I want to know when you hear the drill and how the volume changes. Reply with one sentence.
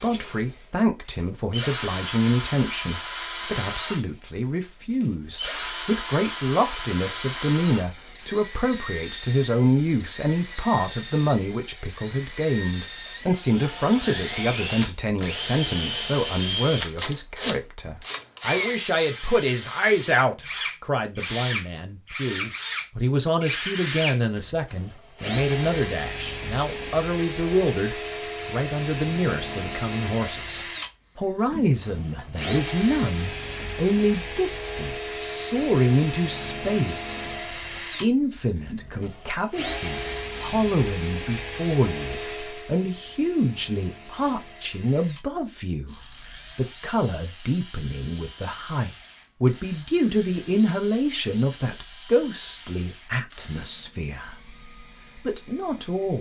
You can hear the drill from 0.0 to 56.1 s, getting quieter.